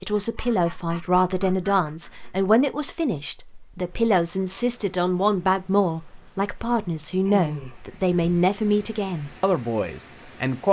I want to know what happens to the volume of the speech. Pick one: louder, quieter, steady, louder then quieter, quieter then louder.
steady.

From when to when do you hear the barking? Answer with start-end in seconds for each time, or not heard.
not heard.